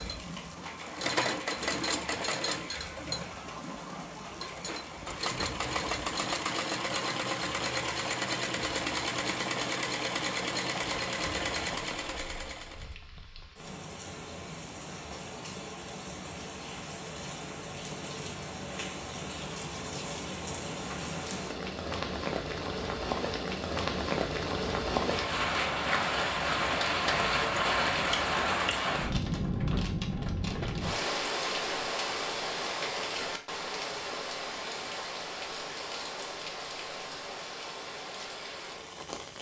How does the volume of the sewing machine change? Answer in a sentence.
The loudness of the sewing machine goes down, then up.